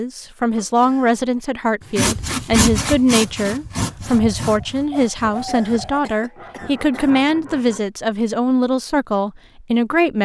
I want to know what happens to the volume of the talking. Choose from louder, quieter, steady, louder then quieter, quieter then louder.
steady.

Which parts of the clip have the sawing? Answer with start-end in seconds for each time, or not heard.
1.9-7.8.